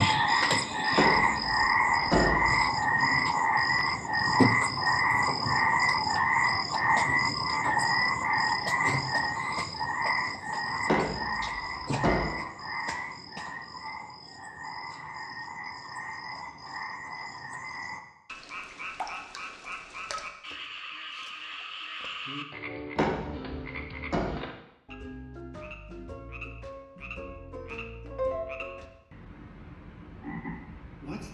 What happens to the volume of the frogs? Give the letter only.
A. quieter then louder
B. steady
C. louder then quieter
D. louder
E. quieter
E.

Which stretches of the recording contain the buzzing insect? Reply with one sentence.
You can't hear the buzzing insect here.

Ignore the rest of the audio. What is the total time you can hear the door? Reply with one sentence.
The door can be heard for 4 seconds in total.